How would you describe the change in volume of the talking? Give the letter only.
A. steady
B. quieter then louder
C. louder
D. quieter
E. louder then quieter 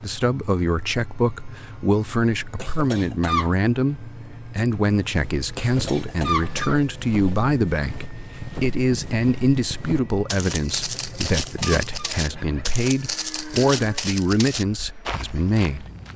A.